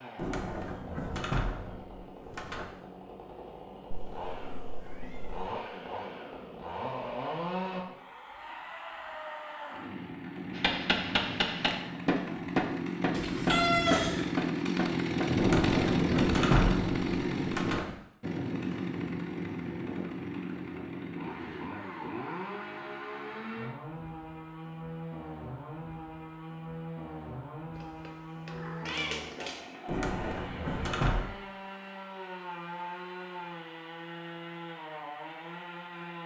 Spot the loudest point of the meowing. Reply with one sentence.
The volume of the meowing peaks at 14 seconds.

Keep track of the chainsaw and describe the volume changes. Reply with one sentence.
The loudness of the chainsaw goes up, then down.